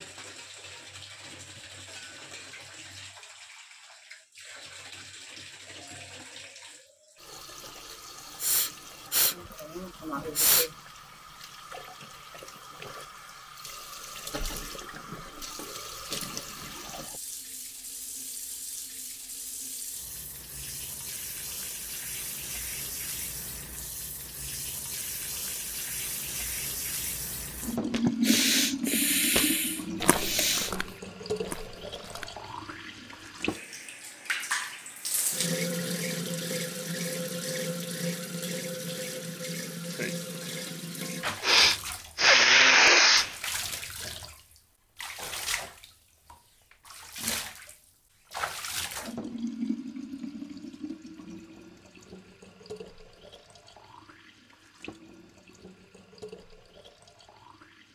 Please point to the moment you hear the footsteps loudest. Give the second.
30 s.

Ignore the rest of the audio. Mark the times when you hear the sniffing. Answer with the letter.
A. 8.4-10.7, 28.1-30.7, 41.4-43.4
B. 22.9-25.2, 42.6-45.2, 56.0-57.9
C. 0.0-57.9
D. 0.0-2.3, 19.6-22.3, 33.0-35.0
A.